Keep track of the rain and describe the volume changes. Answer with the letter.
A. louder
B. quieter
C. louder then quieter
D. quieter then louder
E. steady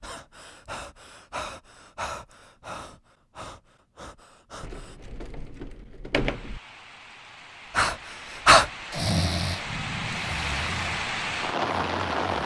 A.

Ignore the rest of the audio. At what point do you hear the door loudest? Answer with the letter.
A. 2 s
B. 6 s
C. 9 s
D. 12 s
B.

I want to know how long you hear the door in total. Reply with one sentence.
The door can be heard for 2 seconds in total.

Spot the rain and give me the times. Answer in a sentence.
The rain can be heard from 6.1 to 12.4 s.